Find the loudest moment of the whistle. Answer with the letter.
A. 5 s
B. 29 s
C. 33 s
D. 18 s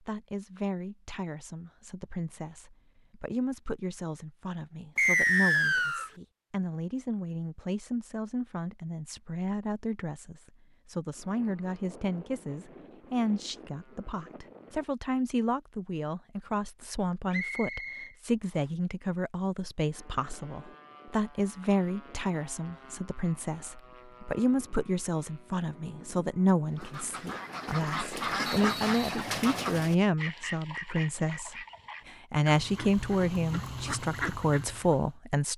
A.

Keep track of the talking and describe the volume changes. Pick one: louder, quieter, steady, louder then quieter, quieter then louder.
louder.